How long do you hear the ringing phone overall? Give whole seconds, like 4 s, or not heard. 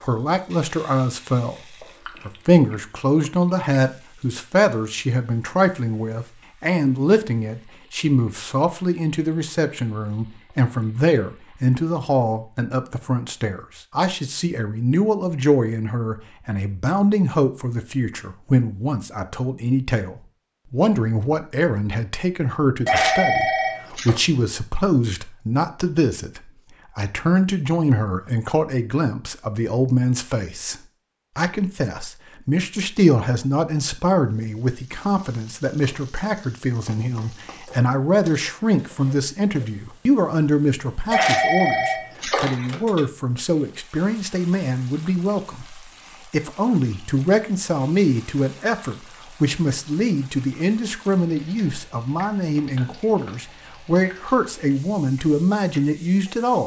3 s.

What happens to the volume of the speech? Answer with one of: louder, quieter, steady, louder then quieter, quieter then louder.
steady.